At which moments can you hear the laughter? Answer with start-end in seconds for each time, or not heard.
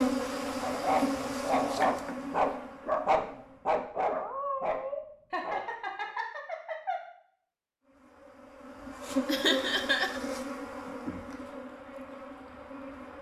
0.6-1.9, 5.3-7.0, 9.2-10.2.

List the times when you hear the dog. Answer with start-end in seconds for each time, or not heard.
0.6-6.1.